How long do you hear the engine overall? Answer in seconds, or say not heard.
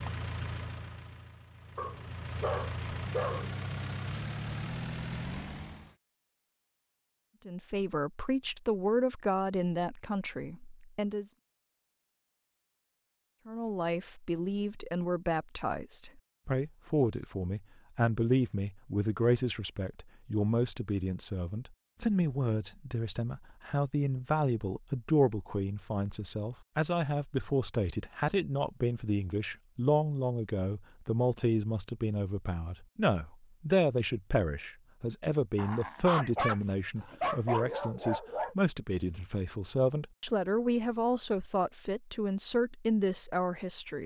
6 s.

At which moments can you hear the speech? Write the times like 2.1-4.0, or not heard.
7.5-11.2, 13.4-44.0.